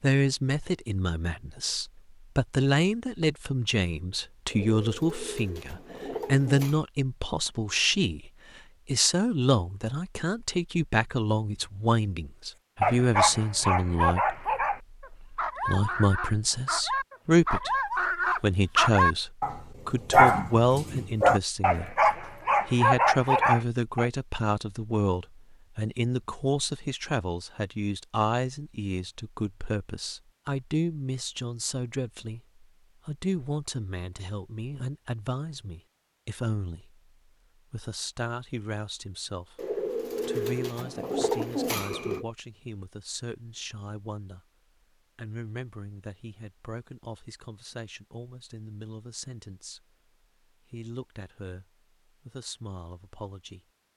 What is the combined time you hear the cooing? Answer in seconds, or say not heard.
5 s.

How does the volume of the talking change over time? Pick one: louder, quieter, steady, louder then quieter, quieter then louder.
quieter.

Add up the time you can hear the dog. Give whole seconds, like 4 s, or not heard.
11 s.